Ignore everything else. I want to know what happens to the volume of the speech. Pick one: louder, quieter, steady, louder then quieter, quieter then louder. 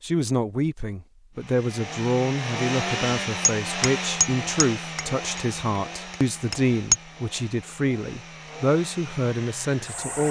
steady.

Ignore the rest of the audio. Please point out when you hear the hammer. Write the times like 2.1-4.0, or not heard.
3.5-7.0.